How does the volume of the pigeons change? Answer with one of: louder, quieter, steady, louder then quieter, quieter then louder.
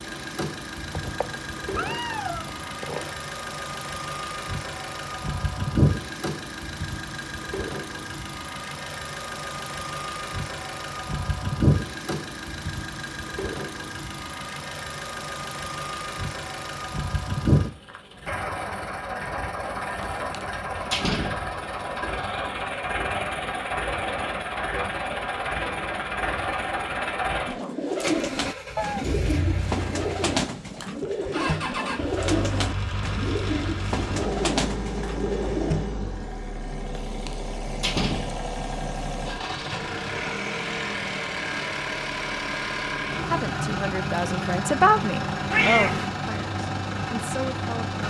steady.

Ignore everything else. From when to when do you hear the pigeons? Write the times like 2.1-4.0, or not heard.
27.4-35.9.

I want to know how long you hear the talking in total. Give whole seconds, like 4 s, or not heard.
5 s.